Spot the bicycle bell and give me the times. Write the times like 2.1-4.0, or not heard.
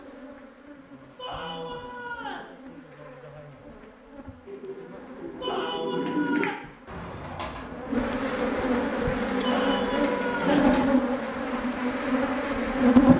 not heard.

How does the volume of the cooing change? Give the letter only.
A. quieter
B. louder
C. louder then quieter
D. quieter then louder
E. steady
C.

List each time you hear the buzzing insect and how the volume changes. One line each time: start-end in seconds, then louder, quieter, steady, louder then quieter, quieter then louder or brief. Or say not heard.
0.0-13.1 louder.